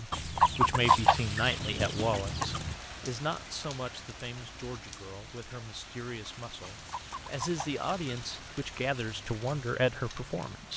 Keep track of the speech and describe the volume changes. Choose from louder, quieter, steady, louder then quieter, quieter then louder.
quieter then louder.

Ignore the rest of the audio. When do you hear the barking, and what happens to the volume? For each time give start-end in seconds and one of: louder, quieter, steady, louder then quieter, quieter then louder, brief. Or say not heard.
not heard.